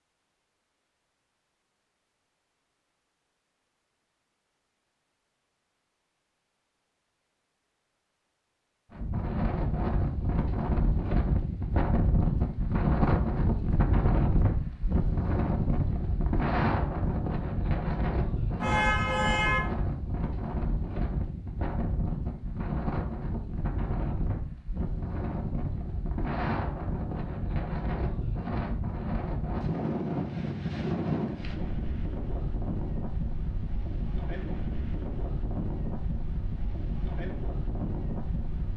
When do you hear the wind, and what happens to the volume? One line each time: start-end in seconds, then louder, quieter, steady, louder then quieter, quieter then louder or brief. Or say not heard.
8.9-38.7 quieter.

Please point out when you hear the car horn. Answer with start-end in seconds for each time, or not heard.
18.6-19.6.